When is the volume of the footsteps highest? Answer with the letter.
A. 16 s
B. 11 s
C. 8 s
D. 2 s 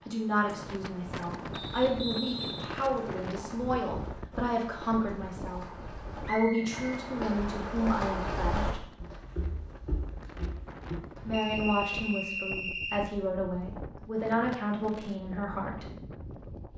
C.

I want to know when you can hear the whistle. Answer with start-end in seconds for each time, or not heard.
1.5-3.2, 6.2-6.8, 11.3-13.1.